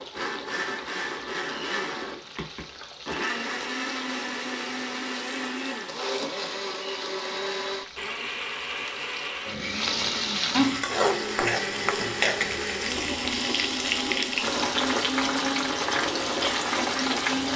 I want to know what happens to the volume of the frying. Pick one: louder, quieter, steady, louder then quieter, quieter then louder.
louder.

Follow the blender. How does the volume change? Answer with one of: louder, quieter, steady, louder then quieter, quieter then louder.
steady.